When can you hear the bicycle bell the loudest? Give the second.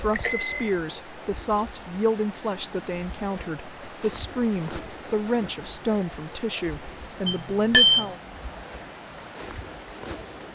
8 s.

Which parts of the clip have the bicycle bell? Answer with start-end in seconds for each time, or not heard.
0.1-0.6, 7.2-8.1.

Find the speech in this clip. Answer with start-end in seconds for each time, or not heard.
0.0-8.2.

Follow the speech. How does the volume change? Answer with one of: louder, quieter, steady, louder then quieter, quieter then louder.
steady.